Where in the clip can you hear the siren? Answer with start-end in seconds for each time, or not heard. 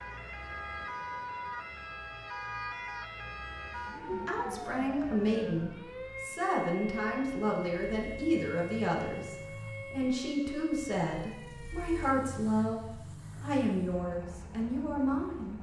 0.0-12.2.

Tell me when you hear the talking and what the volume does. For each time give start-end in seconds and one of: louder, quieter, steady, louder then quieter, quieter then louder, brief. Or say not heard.
4.0-15.5 steady.